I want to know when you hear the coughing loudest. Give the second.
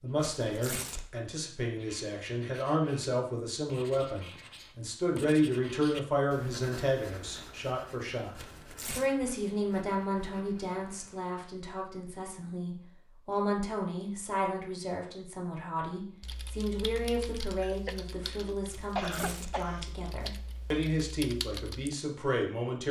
19 s.